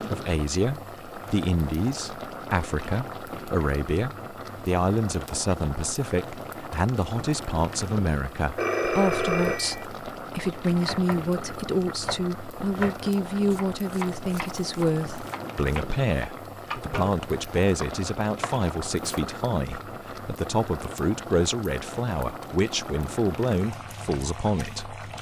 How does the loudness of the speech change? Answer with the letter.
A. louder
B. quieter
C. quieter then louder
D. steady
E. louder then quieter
D.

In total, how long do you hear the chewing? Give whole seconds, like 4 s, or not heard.
not heard.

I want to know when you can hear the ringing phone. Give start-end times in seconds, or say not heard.
8.6-9.8.